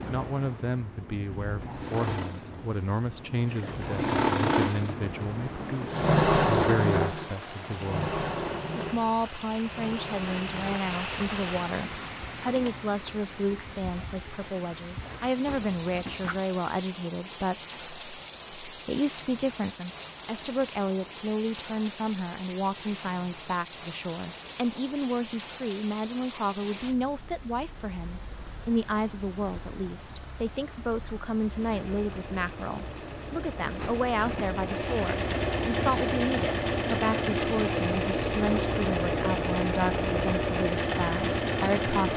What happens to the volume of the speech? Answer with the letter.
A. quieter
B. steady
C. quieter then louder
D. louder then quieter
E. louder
B.